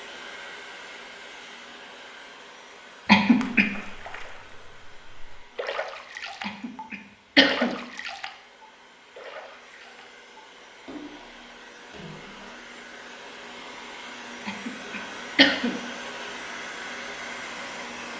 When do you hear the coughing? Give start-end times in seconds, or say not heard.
3.0-3.7, 6.4-7.8, 14.4-15.8.